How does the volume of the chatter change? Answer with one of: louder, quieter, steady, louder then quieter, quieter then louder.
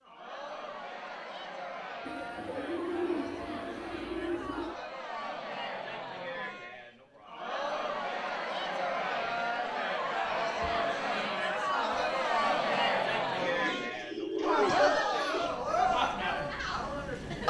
louder.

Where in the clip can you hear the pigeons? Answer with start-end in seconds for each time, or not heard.
2.0-4.8, 13.3-15.6.